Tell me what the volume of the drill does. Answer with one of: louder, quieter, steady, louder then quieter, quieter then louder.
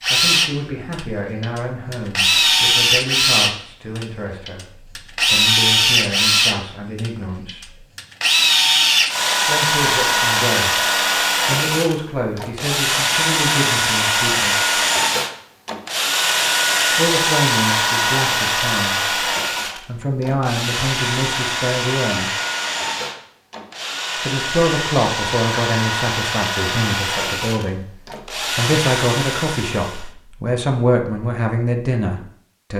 quieter.